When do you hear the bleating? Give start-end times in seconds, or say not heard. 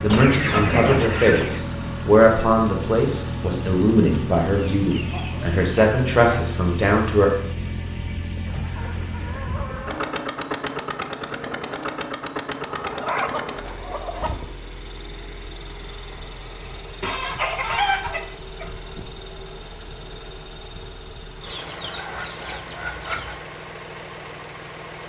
not heard.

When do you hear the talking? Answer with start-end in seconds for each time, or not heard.
0.0-7.3.